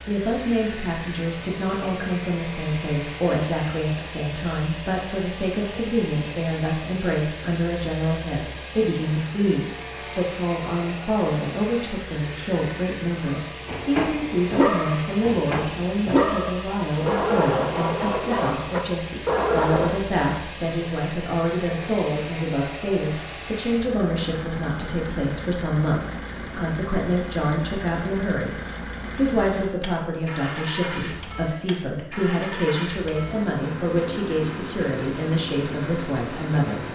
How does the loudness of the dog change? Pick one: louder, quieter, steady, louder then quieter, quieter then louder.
quieter then louder.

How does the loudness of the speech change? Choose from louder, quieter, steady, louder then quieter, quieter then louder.
steady.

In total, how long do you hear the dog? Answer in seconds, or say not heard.
7 s.